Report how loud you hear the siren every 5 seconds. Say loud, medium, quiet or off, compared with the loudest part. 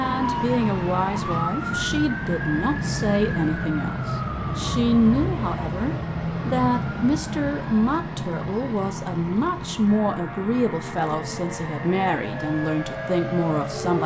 loud, loud, medium.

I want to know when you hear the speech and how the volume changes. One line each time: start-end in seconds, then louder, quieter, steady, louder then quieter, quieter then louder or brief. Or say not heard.
0.0-14.0 steady.